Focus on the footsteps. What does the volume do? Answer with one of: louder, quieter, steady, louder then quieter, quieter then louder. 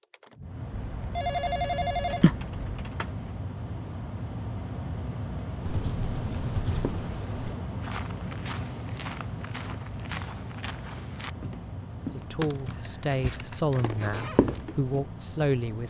louder.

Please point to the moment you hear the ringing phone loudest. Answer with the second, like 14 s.
2 s.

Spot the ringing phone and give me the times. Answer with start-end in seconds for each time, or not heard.
0.7-2.6.